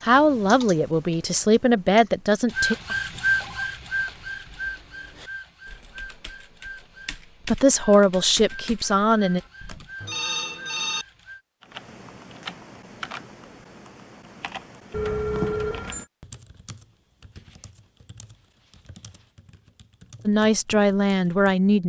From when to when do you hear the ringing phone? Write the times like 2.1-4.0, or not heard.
2.9-3.7, 10.0-11.1, 14.9-16.1.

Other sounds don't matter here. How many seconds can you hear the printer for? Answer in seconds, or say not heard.
9 s.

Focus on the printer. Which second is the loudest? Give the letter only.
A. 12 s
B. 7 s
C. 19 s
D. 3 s
D.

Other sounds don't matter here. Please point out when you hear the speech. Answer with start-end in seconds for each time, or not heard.
0.0-2.8, 7.5-9.4, 20.2-21.8.